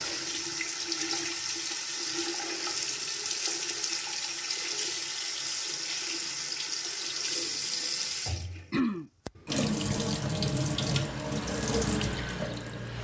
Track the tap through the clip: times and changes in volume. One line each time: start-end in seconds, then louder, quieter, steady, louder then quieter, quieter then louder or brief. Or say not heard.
0.0-12.9 steady.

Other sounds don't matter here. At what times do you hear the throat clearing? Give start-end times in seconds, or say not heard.
8.7-9.8.